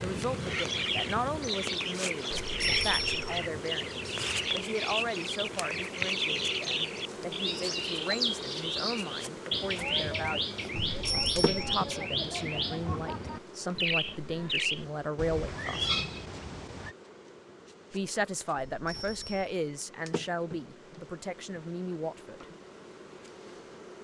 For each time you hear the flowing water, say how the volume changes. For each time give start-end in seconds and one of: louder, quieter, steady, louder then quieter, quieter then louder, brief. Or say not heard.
not heard.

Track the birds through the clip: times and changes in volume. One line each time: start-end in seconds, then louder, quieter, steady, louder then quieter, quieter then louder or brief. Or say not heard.
0.0-16.9 steady.